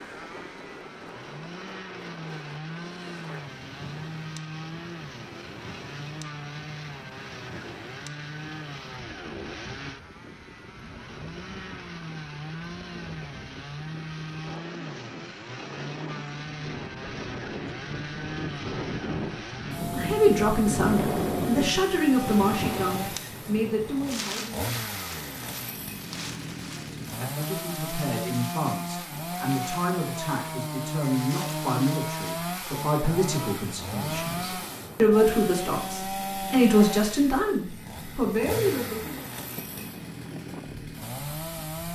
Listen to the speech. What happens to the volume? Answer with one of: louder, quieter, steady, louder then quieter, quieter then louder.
quieter then louder.